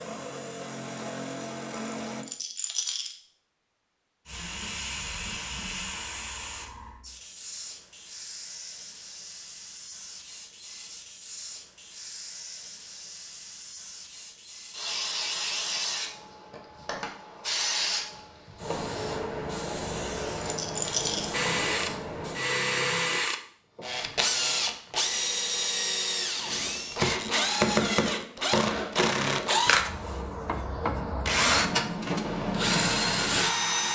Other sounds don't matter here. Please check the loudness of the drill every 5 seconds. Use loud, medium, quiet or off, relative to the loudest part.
medium, off, off, off, loud, loud, loud.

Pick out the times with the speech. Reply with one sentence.
You can't hear the speech here.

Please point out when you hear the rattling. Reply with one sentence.
The rattling can be heard from 2.2 to 3.1 s and from 20.4 to 21.3 s.